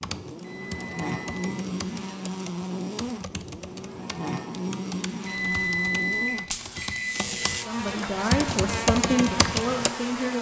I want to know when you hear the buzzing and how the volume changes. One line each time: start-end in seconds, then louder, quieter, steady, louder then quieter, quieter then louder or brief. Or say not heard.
0.0-10.3 steady.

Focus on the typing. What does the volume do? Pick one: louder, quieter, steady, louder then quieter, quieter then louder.
louder.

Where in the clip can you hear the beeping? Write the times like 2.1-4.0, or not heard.
0.4-1.4, 5.2-7.3.